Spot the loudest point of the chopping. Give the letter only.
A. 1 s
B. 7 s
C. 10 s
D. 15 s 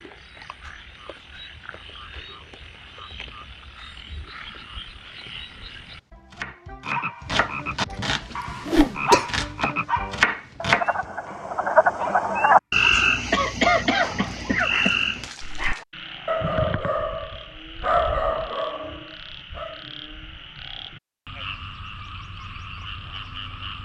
C.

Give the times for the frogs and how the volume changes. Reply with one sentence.
You can hear the frogs from 0.0 to 23.8 s, getting louder then quieter.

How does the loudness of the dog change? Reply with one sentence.
The loudness of the dog goes down, then up.